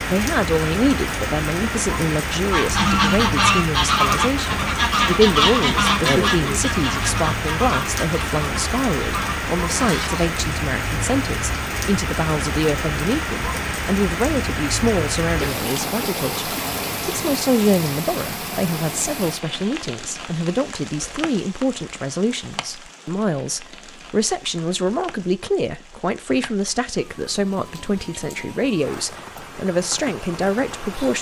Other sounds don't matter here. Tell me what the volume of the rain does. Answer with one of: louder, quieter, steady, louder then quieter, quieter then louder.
quieter.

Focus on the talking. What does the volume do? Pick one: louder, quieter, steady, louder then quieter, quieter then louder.
steady.